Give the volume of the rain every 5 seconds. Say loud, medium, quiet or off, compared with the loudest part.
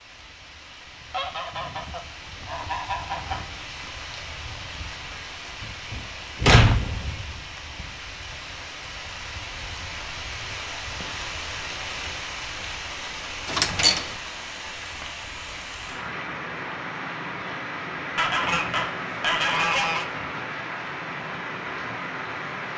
medium, medium, loud, loud, loud.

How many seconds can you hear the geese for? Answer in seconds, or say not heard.
4 s.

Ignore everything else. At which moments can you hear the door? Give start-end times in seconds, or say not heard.
5.6-7.3, 13.4-14.2.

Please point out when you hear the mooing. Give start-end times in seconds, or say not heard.
not heard.